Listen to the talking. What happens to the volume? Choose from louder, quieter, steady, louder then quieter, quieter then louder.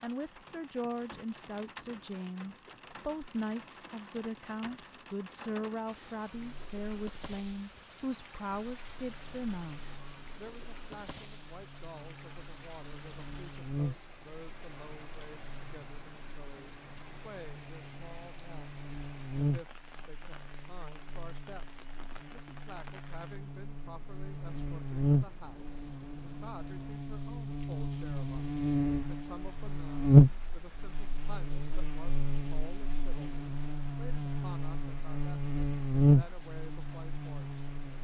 quieter.